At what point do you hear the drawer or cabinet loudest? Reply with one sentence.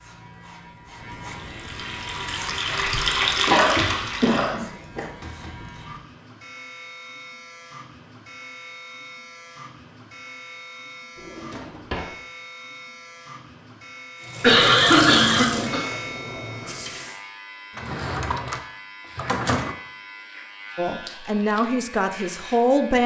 The loudest moment of the drawer or cabinet is at 19 seconds.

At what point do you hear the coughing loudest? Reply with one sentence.
The loudest moment of the coughing is at 15 seconds.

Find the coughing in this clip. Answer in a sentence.
You can hear the coughing from 2.6 to 5.0 s and from 14.4 to 15.8 s.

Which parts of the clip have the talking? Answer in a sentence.
You can hear the talking from 20.8 to 23.0 s.